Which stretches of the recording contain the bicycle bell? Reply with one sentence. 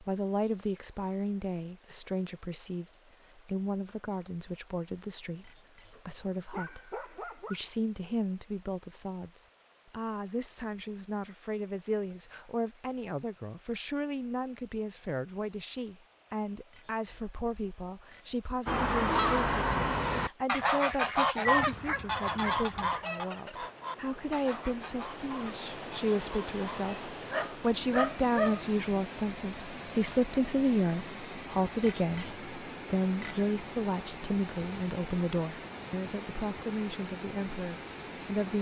The bicycle bell can be heard from 5.4 to 6.0 s, from 16.7 to 18.4 s and from 31.8 to 33.5 s.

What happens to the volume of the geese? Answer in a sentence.
The loudness of the geese goes down.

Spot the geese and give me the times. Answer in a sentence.
The geese can be heard from 18.6 to 26.9 s.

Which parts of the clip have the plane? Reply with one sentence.
You can't hear the plane here.